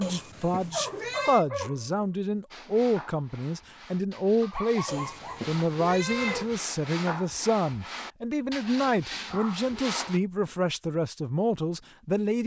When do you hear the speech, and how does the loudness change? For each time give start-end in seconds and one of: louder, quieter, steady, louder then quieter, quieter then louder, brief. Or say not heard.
0.0-12.4 steady.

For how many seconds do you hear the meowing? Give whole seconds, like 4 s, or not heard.
4 s.